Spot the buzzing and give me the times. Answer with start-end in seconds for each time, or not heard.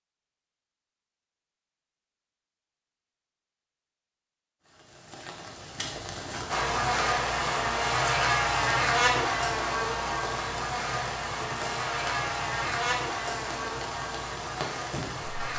6.5-15.5.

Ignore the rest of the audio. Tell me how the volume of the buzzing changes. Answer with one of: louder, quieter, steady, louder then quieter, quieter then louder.
quieter.